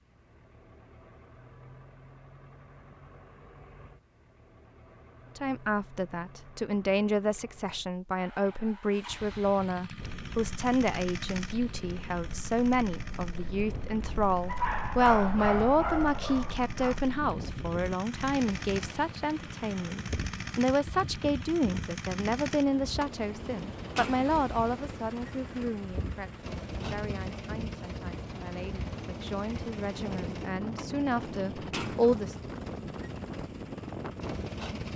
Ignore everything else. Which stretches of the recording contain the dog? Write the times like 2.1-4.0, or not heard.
14.4-16.9.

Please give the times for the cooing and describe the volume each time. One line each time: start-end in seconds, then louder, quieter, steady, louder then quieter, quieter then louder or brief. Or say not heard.
not heard.